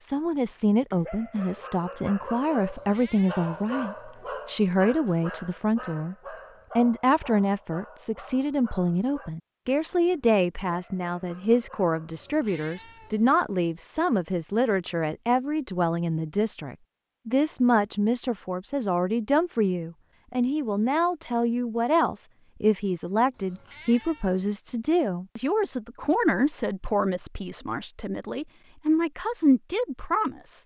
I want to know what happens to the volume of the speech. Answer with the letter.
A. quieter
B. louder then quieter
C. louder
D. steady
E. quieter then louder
D.